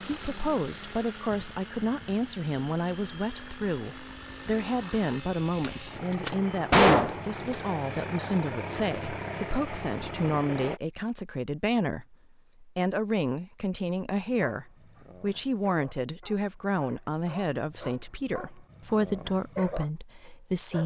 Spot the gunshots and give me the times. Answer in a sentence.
You can hear the gunshots from 5.6 to 7.5 s.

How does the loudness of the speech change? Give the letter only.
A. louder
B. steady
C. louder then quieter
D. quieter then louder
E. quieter
B.